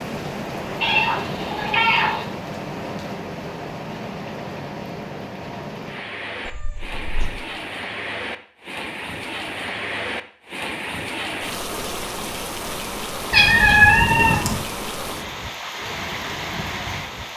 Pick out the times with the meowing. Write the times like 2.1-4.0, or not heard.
0.8-2.2, 6.5-7.3, 13.3-14.6.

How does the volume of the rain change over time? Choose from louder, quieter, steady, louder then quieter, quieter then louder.
steady.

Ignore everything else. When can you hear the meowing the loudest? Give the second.
14 s.